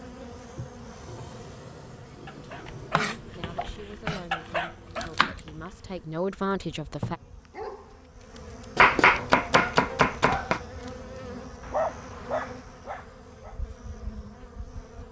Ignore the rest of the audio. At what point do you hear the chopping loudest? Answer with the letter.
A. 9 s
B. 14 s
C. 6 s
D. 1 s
A.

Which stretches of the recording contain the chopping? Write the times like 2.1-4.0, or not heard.
2.6-5.4, 8.8-10.6.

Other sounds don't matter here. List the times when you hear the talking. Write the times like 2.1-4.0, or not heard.
2.4-7.2.